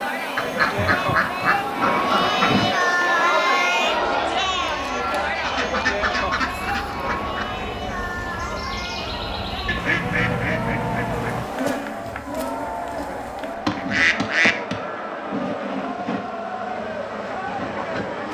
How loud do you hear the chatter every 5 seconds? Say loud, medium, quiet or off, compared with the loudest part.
loud, medium, medium, medium.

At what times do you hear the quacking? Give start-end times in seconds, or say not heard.
0.3-2.7, 5.4-7.5, 9.7-11.4, 13.8-14.6.